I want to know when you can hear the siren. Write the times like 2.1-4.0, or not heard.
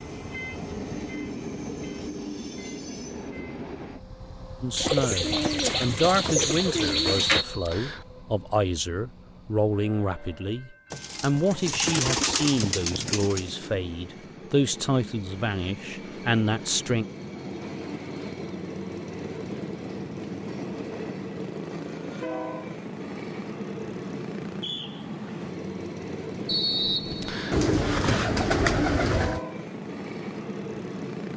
not heard.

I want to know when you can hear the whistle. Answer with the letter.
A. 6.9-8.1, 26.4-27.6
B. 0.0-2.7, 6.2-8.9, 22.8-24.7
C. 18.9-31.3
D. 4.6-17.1
A.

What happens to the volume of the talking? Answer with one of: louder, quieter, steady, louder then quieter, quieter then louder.
steady.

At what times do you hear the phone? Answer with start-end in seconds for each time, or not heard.
not heard.